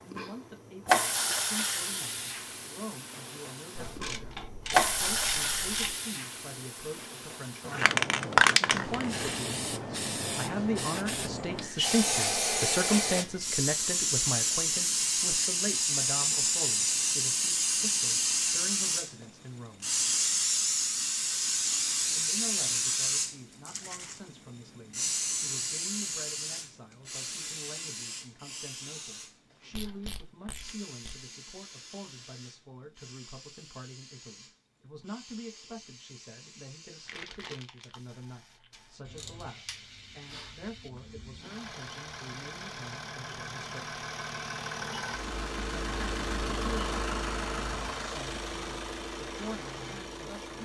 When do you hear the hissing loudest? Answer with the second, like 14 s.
8 s.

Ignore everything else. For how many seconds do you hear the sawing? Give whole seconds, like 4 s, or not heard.
not heard.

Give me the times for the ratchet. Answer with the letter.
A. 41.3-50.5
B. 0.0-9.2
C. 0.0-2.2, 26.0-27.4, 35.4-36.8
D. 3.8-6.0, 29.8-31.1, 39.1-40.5
D.